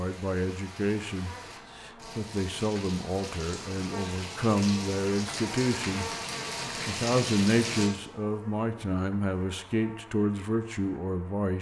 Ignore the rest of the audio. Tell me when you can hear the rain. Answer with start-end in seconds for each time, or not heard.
0.0-7.9.